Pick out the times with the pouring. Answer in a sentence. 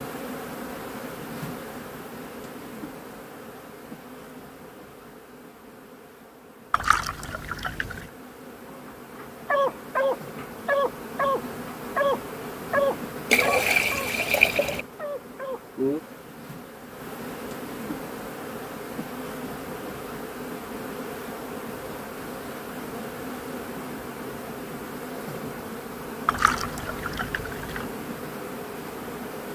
You can hear the pouring from 6.7 to 8.1 s, from 13.3 to 14.8 s and from 26.2 to 27.9 s.